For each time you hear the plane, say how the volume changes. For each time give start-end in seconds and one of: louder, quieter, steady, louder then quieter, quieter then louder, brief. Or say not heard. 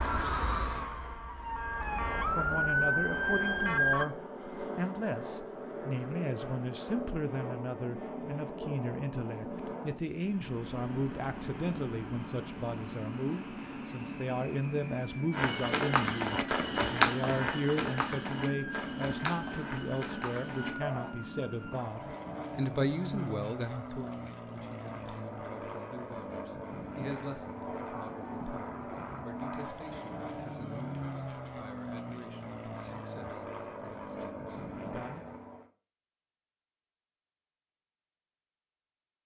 1.6-35.7 steady.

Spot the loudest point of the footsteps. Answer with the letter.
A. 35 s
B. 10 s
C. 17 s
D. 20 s
C.